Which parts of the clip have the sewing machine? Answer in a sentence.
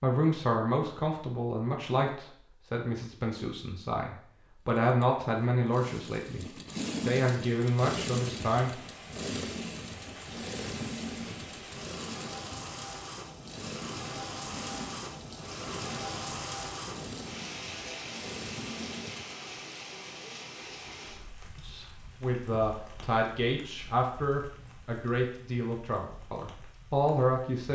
The sewing machine can be heard from 4.8 to 19.4 s.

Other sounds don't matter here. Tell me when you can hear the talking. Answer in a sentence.
You can hear the talking from 0.0 to 6.5 s, from 7.0 to 8.8 s and from 21.6 to 27.7 s.